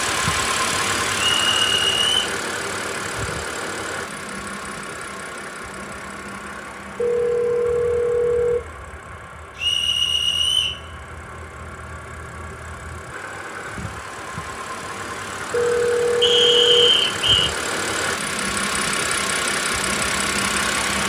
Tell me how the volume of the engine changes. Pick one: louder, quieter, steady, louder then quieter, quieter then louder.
quieter then louder.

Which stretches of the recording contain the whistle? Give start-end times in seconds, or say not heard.
1.4-2.3, 9.6-10.8, 16.2-17.5.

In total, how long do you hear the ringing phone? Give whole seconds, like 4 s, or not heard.
3 s.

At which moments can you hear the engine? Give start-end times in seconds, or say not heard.
0.0-21.0.